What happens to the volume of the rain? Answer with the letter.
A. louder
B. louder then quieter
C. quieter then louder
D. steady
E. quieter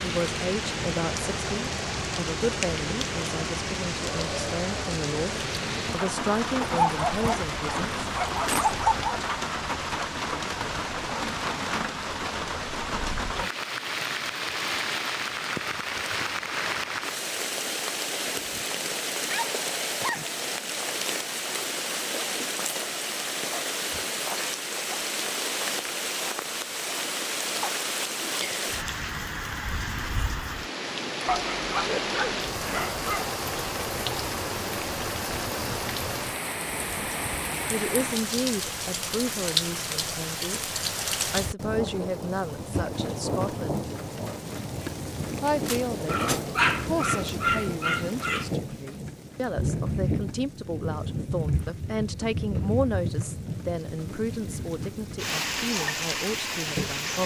D.